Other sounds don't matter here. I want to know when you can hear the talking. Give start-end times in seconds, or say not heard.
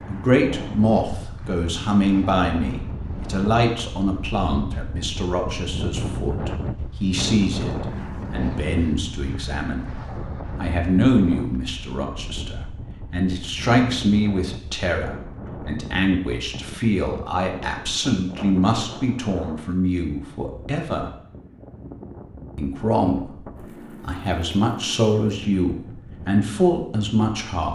0.1-9.8, 10.6-21.1, 22.6-27.6.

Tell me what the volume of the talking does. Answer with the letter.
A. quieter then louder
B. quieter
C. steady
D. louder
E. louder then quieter
C.